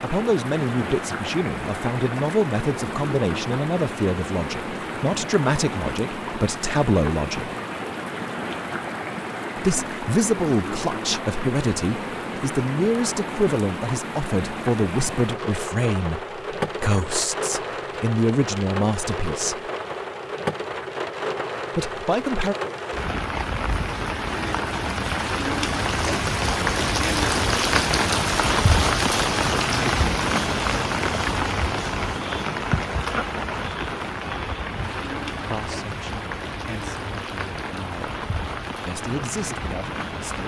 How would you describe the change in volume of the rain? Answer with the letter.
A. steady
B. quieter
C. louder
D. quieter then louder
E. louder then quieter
E.